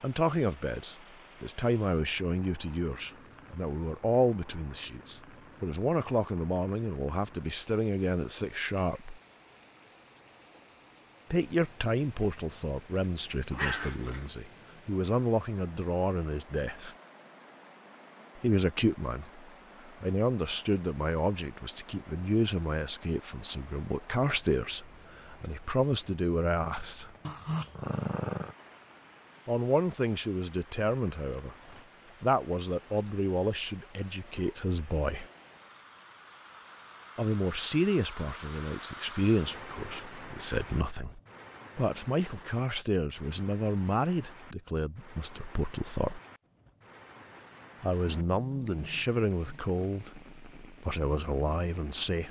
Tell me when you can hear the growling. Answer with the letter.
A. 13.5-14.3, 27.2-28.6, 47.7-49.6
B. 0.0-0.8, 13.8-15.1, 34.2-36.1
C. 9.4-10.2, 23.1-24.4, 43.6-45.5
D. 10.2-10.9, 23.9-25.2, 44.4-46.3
A.